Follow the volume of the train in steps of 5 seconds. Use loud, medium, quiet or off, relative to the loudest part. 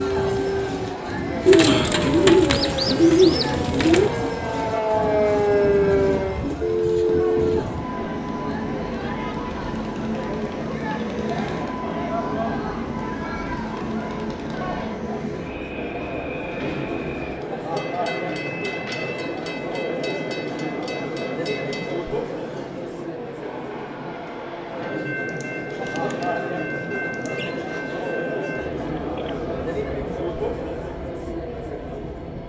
loud, loud, loud, medium, medium, medium, medium.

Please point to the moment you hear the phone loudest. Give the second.
7 s.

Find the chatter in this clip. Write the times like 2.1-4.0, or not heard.
0.0-32.4.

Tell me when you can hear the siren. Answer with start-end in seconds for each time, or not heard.
0.0-6.5.